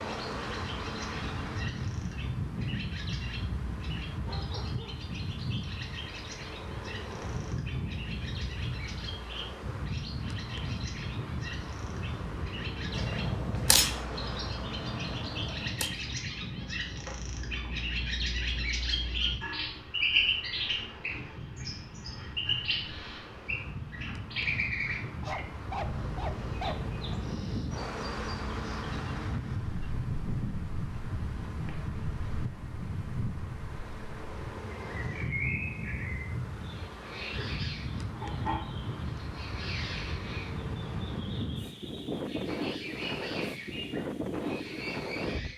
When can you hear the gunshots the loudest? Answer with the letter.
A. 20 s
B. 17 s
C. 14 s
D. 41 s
C.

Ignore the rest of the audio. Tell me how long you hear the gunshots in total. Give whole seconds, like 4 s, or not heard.
3 s.